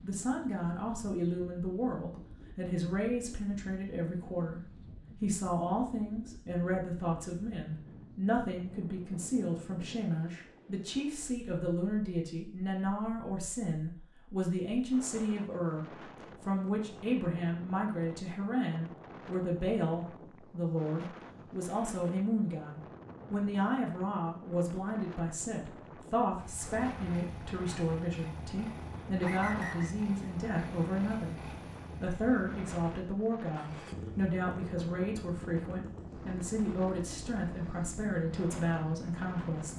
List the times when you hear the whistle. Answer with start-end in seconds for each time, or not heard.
29.2-29.9.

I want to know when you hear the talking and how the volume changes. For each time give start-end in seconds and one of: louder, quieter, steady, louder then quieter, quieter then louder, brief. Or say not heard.
0.0-39.7 steady.